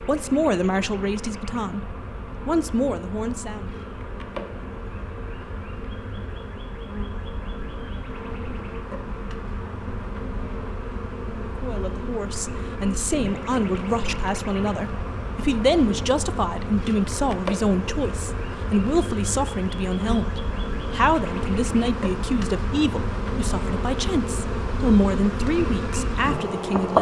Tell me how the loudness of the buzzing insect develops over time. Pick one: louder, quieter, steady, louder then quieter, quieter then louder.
louder.